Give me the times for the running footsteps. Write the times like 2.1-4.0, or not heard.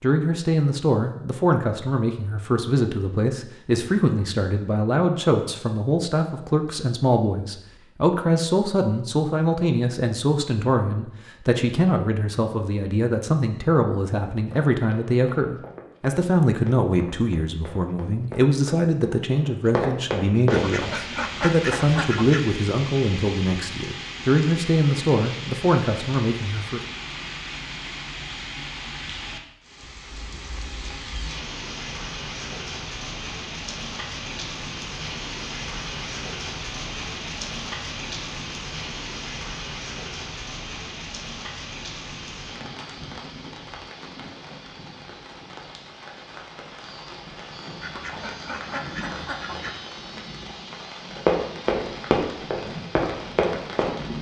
14.3-20.8, 51.1-54.0.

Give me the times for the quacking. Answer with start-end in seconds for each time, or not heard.
20.4-22.4, 47.8-49.8.